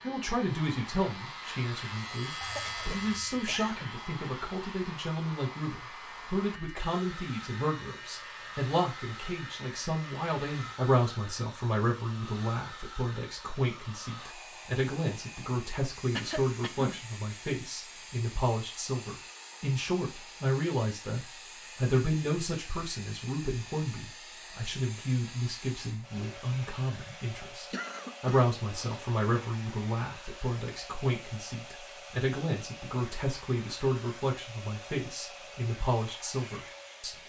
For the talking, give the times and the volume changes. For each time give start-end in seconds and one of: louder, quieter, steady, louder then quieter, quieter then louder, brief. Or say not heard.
0.0-37.1 steady.